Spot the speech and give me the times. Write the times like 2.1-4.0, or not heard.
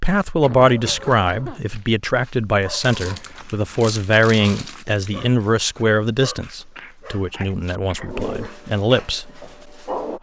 0.0-9.4.